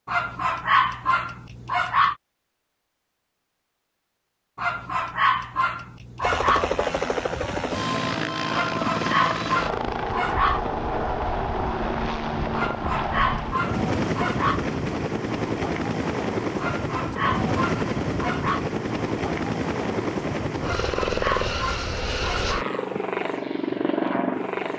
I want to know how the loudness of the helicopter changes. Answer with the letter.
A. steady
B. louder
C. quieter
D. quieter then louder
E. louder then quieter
A.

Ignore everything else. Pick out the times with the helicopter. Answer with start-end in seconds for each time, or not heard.
6.2-24.7.